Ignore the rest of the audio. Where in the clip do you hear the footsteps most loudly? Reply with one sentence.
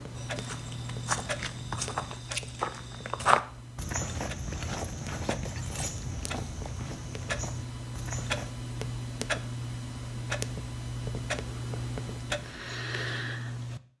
The volume of the footsteps peaks at 3 seconds.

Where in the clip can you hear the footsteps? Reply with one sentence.
You can hear the footsteps from 0.1 to 8.5 s.